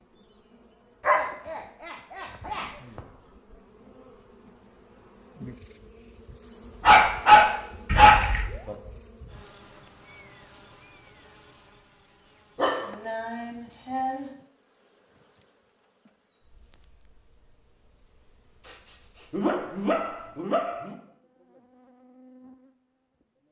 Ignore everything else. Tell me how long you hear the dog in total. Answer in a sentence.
The dog can be heard for 8 seconds in total.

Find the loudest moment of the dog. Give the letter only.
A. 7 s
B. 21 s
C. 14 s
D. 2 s
A.